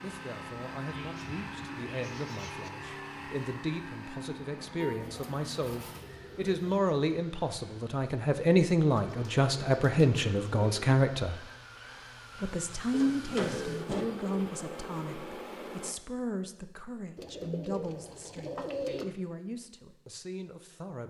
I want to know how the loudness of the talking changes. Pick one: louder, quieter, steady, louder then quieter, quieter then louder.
louder then quieter.